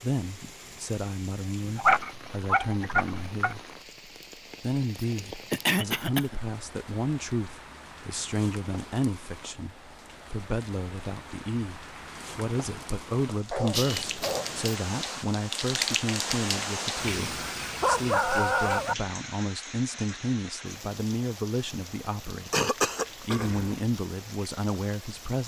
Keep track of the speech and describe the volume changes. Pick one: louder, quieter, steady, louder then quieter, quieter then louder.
steady.